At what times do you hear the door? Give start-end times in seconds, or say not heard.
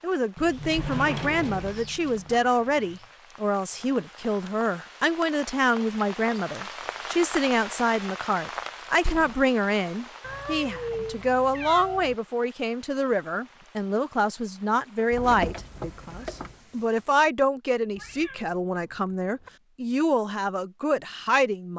0.3-2.4, 9.0-9.4, 15.1-16.6.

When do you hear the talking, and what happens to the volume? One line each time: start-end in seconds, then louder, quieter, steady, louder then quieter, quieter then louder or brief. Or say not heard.
0.0-21.7 steady.